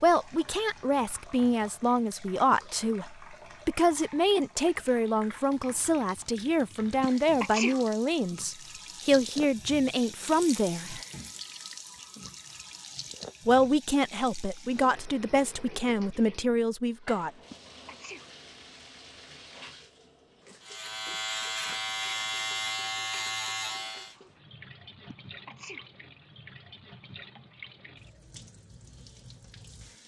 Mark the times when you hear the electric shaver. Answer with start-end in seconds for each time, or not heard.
20.6-24.1.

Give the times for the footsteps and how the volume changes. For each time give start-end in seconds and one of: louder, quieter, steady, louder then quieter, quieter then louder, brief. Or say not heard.
not heard.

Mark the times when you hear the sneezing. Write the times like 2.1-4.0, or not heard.
7.0-7.8, 17.5-18.3, 25.1-25.9.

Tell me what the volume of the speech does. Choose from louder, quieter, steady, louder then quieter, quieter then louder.
steady.